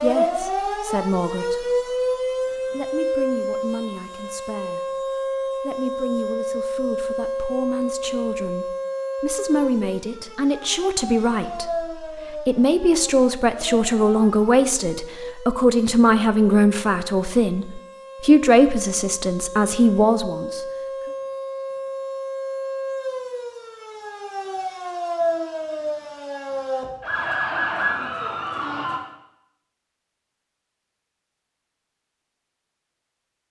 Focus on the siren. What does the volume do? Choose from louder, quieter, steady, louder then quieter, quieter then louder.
quieter then louder.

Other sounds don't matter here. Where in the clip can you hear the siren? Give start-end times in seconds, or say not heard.
0.0-29.0.